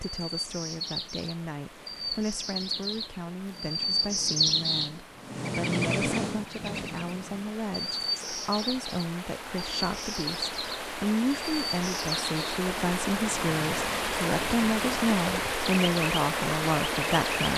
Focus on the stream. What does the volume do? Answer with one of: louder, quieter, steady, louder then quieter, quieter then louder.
louder.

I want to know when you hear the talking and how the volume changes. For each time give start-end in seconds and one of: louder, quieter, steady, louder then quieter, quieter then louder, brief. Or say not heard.
0.0-17.5 louder.